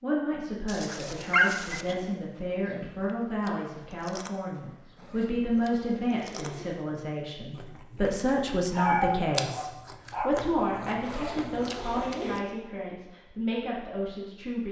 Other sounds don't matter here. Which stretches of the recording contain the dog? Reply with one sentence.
The dog can be heard from 0.7 to 1.9 s and from 8.7 to 10.3 s.